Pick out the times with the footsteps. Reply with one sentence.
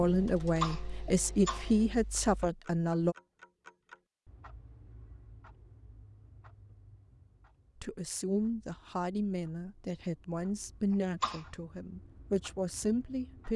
The footsteps can't be heard in this clip.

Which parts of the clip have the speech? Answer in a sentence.
The speech can be heard from 0.0 to 3.1 s and from 7.8 to 13.5 s.